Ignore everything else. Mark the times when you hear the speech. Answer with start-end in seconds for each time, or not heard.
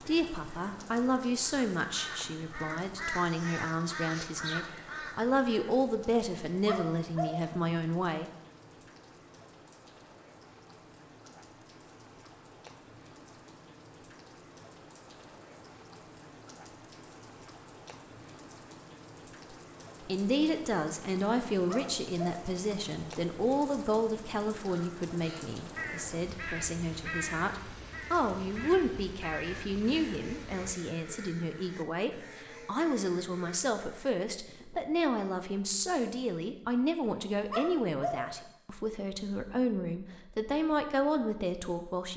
0.1-8.3, 20.1-42.1.